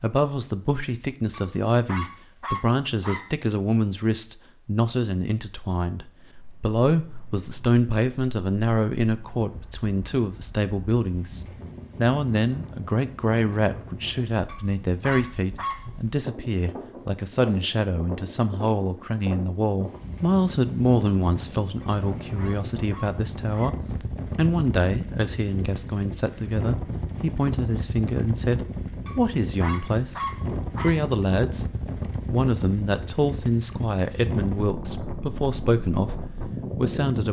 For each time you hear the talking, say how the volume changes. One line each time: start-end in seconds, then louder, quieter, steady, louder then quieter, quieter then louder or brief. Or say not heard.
0.0-37.2 steady.